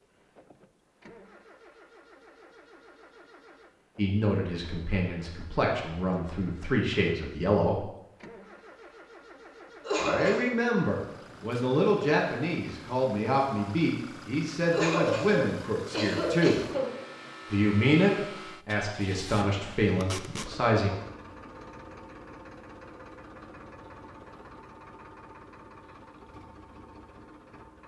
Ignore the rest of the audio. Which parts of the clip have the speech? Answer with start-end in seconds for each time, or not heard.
4.0-7.8, 9.9-16.6, 17.5-20.9.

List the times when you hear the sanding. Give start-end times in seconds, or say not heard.
not heard.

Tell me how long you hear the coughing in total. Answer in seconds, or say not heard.
3 s.